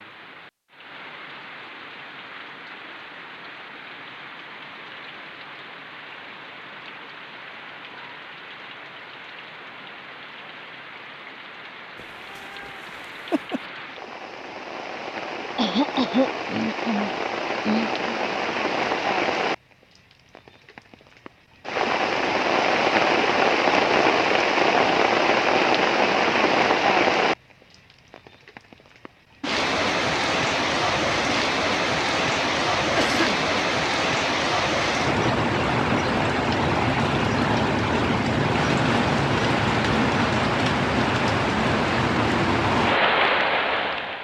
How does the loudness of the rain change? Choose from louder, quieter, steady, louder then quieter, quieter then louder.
louder.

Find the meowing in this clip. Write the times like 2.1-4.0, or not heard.
11.9-13.6.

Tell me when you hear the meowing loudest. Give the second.
13 s.